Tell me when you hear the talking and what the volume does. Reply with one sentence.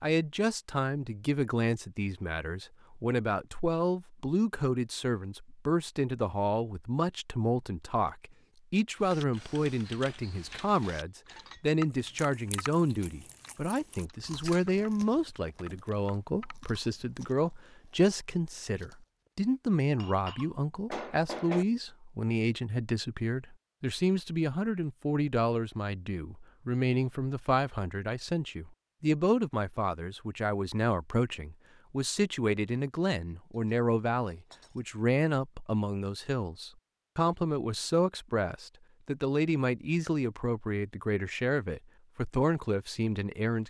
You can hear the talking from 0.0 to 43.6 s, at a steady volume.